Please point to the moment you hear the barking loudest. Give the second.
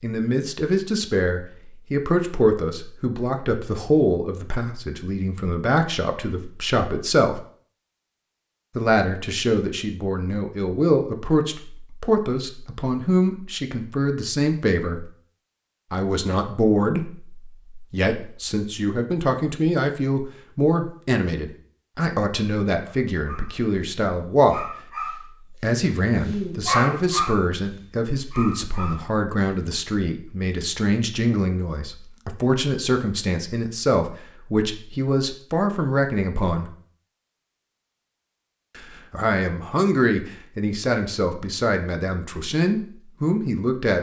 27 s.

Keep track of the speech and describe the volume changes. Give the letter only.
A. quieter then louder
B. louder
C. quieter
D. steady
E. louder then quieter
D.